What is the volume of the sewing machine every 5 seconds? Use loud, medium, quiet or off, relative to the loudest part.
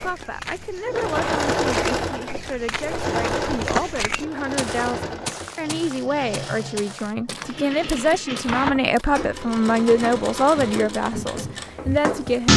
loud, medium, loud.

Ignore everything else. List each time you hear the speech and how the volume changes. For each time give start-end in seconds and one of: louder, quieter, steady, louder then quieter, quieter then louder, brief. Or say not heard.
0.0-12.5 louder.